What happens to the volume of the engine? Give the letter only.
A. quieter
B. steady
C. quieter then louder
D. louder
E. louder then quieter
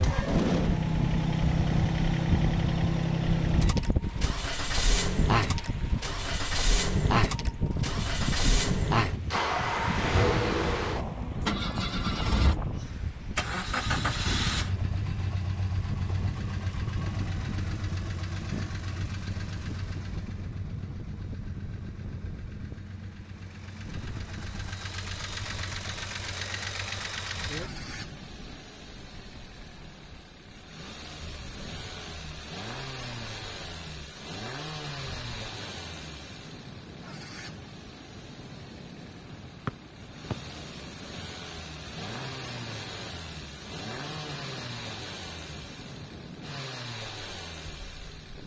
A.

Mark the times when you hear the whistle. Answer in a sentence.
The whistle can be heard from 39.6 to 40.4 s.